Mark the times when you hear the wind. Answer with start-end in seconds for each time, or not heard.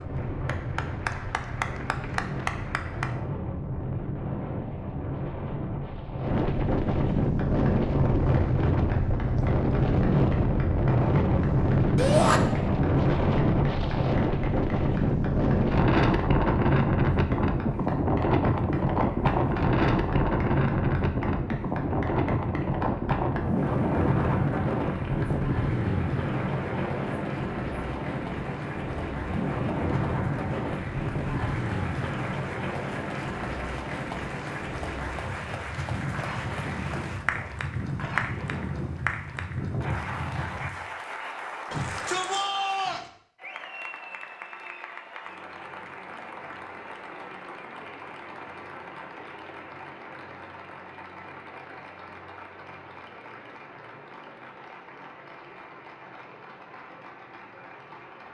0.0-40.9.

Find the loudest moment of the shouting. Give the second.
12 s.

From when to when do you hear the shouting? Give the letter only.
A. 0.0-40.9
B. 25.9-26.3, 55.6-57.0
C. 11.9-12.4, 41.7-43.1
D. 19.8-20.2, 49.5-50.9
C.